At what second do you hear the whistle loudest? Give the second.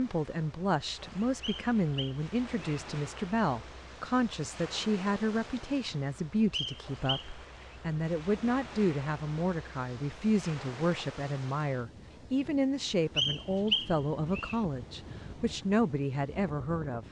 14 s.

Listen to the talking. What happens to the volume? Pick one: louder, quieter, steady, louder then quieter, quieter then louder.
steady.